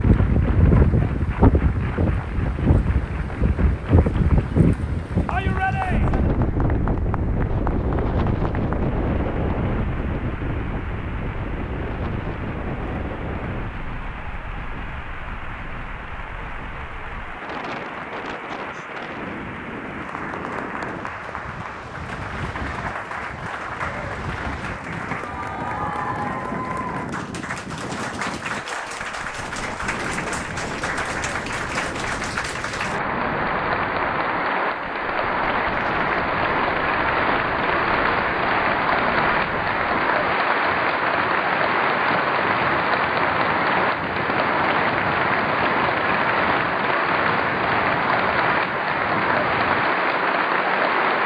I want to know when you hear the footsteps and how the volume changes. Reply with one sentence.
The footsteps can't be heard in this clip.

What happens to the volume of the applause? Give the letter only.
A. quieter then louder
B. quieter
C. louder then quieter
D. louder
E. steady
D.